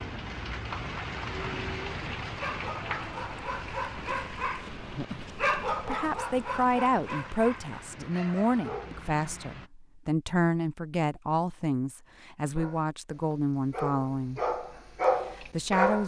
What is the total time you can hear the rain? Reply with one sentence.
You can hear the rain for 10 seconds altogether.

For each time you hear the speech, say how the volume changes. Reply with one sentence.
The speech can be heard from 5.8 to 14.4 s, at a steady volume; and briefly from 15.3 to 16.0 s.